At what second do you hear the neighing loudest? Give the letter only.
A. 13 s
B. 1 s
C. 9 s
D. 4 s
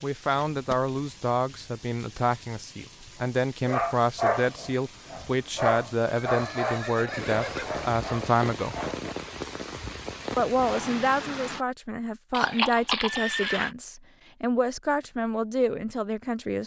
A.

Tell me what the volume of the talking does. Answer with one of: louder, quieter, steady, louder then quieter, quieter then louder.
steady.